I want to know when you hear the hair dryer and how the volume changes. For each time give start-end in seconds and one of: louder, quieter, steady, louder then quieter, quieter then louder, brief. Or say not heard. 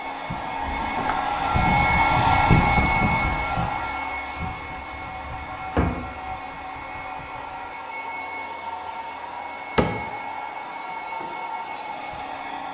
0.0-12.6 quieter.